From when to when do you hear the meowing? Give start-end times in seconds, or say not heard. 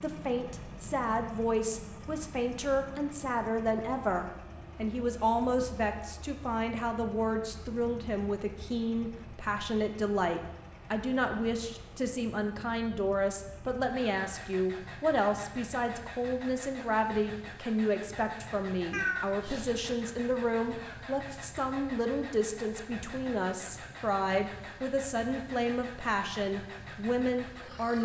18.9-19.8.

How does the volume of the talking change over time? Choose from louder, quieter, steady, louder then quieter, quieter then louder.
steady.